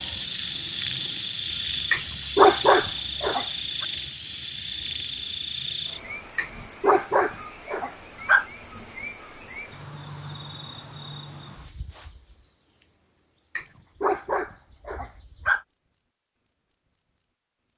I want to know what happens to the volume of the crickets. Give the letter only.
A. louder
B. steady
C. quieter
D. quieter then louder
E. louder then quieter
C.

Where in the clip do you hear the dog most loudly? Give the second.
3 s.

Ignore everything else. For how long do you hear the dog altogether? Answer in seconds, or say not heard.
6 s.